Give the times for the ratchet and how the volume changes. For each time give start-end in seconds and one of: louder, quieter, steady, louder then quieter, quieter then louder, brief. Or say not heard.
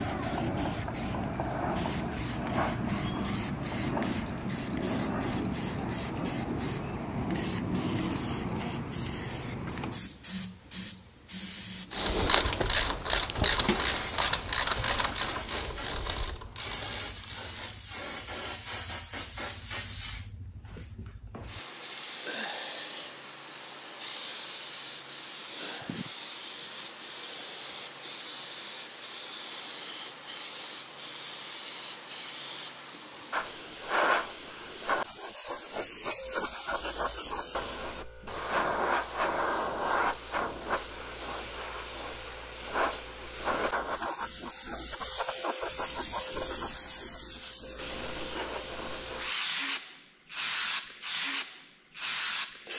11.9-17.9 quieter.